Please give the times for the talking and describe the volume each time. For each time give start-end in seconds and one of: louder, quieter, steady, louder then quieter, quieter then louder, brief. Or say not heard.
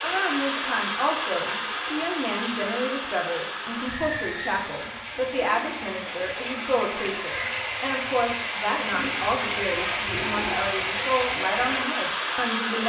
0.0-12.8 steady.